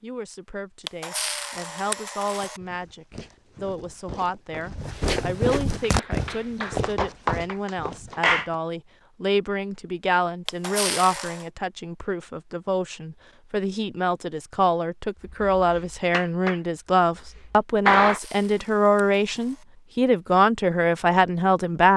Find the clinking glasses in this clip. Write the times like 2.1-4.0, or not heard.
not heard.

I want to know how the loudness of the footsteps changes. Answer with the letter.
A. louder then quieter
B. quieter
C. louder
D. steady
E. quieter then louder
A.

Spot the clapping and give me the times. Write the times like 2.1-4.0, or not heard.
5.8-8.4, 15.6-18.2.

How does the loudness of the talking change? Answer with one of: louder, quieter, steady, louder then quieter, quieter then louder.
louder.